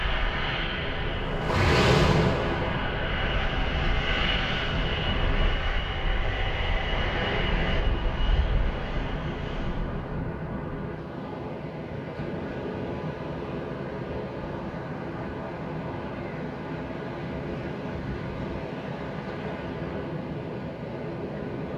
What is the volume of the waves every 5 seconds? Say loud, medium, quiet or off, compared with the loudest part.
loud, medium, medium, medium, medium.